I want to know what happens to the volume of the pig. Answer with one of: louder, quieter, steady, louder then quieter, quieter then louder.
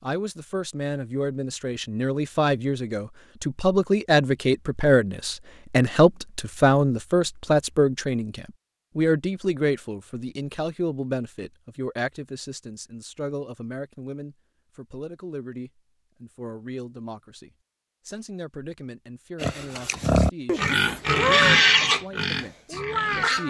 louder then quieter.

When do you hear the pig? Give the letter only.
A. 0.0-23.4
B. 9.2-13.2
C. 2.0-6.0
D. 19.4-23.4
D.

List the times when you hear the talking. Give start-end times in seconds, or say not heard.
0.0-23.4.